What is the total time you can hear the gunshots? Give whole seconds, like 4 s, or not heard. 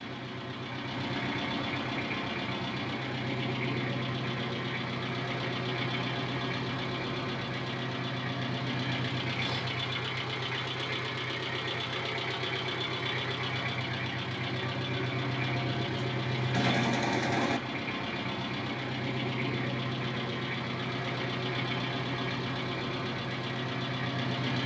2 s.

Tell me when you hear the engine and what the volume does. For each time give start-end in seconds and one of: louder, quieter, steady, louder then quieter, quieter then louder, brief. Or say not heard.
0.0-24.6 steady.